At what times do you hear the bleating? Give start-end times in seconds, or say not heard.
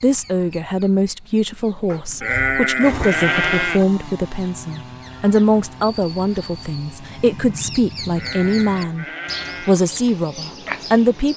2.2-3.9, 8.2-9.8.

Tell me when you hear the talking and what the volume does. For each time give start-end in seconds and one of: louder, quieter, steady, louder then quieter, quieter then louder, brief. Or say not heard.
0.0-11.3 steady.